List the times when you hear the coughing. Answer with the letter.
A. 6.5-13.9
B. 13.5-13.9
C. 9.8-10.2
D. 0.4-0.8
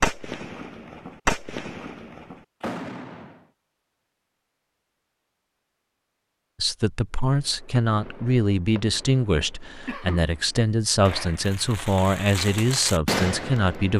C.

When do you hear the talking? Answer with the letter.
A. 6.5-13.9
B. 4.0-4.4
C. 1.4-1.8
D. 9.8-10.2
A.